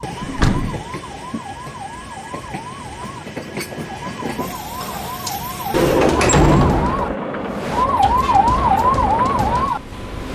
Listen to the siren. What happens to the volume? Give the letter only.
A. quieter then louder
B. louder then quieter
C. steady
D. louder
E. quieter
D.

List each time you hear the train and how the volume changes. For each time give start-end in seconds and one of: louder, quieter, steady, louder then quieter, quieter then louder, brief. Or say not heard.
0.0-10.2 louder.